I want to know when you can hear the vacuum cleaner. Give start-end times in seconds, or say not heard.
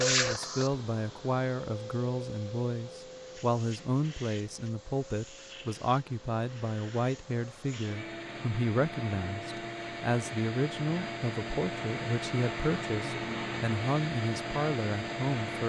0.0-15.6.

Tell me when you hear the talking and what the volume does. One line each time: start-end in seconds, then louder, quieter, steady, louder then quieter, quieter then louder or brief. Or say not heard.
0.0-15.6 steady.